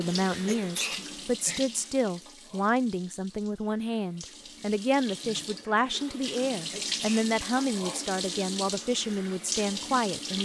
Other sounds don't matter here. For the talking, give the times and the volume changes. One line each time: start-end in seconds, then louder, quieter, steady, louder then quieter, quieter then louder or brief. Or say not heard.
0.0-10.3 steady.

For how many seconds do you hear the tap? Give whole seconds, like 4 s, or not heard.
10 s.